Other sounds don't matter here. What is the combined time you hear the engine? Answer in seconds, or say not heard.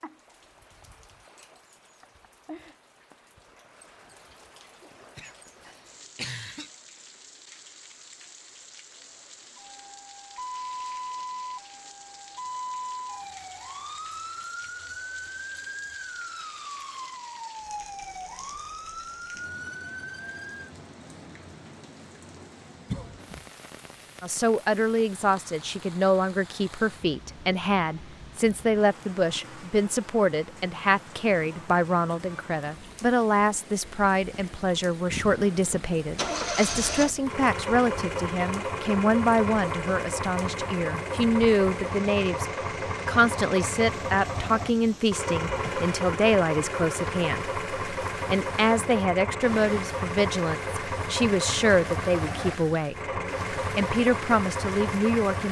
20 s.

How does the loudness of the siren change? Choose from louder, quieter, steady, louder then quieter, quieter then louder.
steady.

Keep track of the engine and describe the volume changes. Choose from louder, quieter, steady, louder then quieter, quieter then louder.
steady.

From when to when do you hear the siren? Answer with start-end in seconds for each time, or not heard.
9.6-20.7.